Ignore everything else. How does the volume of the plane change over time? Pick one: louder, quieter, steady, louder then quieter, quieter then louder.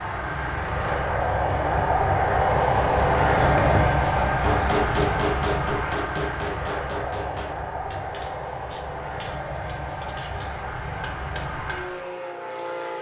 quieter.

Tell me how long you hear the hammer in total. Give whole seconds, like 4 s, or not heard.
11 s.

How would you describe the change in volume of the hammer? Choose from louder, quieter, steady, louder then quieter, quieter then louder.
louder then quieter.